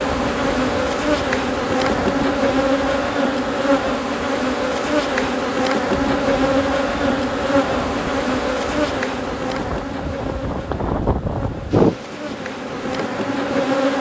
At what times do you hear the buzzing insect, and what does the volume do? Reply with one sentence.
The buzzing insect can be heard from 0.0 to 13.9 s, getting quieter.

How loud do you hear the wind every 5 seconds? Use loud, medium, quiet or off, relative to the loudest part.
medium, medium, loud.